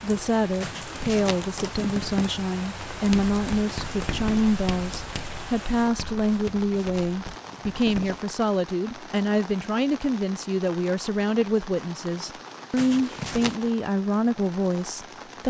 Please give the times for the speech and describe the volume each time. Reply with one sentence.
You can hear the speech from 0.0 to 15.4 s, at a steady volume.